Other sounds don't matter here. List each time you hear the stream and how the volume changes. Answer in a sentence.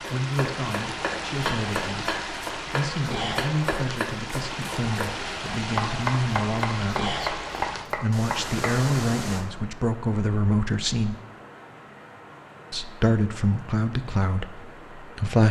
You can hear the stream from 0.0 to 15.4 s, getting quieter.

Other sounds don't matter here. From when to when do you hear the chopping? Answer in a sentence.
The chopping can be heard from 0.0 to 8.8 s.